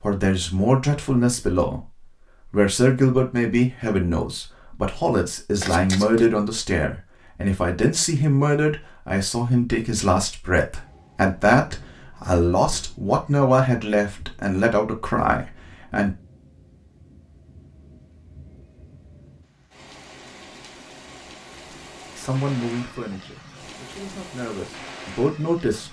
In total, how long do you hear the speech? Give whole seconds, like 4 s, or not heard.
20 s.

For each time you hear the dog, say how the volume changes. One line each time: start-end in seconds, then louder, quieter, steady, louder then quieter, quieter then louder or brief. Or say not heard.
not heard.